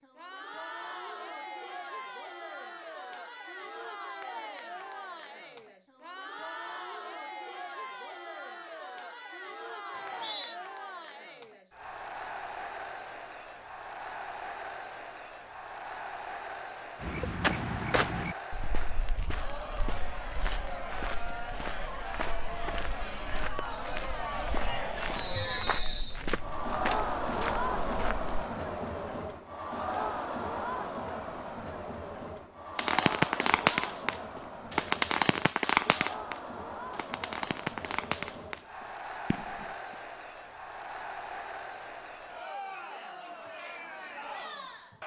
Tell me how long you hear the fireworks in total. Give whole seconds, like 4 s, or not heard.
7 s.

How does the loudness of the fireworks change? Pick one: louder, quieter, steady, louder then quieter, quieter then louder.
quieter.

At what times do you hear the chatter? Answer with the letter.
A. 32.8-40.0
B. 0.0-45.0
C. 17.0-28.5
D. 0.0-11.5
B.